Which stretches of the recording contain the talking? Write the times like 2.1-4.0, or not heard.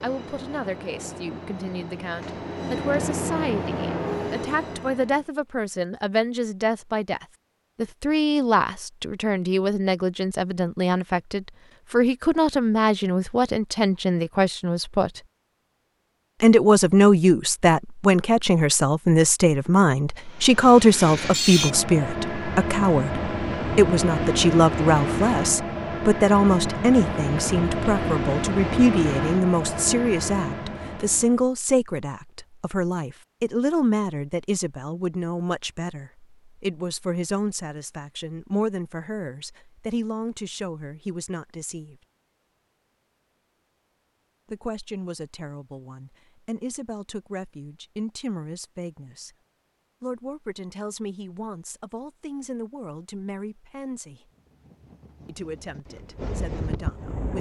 0.0-15.2, 16.4-42.0, 44.5-49.3, 50.0-54.2, 55.2-57.3.